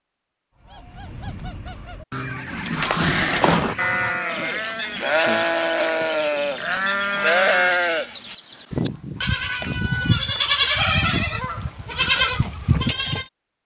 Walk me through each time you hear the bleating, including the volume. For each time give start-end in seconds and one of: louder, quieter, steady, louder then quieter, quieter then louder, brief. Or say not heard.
2.5-13.3 steady.